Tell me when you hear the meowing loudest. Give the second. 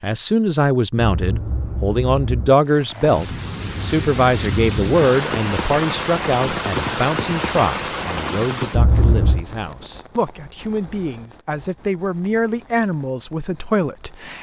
9 s.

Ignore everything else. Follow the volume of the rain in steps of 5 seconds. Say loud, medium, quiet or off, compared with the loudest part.
loud, loud, quiet.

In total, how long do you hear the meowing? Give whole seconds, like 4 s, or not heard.
2 s.